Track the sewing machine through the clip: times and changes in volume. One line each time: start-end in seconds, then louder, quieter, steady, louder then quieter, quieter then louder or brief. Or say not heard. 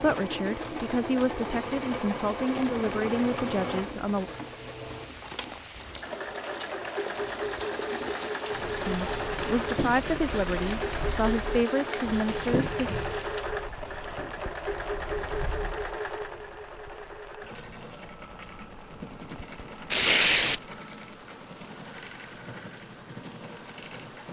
0.0-24.2 quieter.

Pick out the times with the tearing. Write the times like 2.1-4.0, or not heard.
5.0-6.7, 19.9-20.6.